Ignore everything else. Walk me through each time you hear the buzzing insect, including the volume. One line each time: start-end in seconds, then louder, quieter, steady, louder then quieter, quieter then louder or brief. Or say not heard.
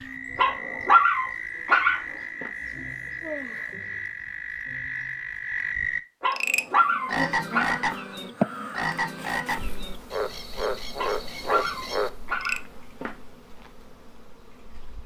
6.5-15.0 louder then quieter.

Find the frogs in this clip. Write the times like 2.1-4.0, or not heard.
0.0-12.6.